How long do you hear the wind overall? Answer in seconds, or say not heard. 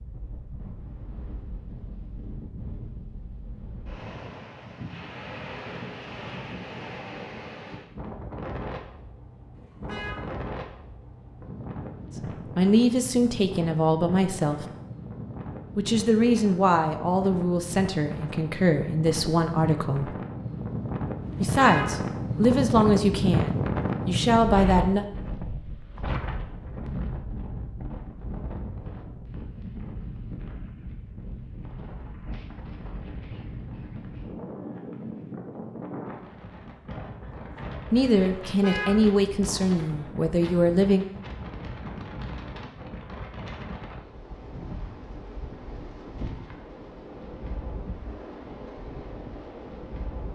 50 s.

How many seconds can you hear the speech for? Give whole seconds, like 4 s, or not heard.
13 s.